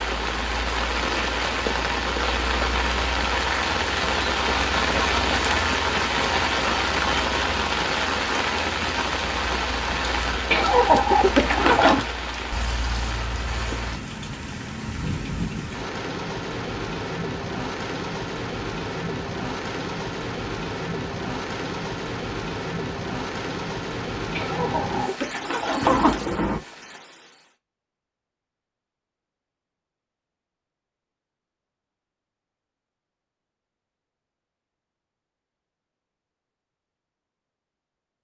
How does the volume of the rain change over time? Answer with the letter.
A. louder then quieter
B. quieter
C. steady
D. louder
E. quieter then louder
B.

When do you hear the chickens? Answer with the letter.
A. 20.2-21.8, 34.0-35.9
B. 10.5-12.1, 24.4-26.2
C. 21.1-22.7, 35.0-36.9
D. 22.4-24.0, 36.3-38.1
B.